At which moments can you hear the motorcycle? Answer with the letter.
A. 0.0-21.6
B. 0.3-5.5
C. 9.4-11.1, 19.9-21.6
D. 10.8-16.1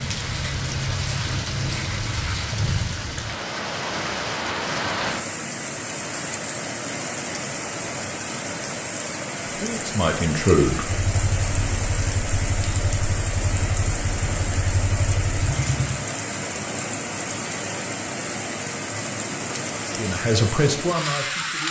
D.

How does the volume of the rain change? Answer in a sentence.
The volume of the rain stays about the same.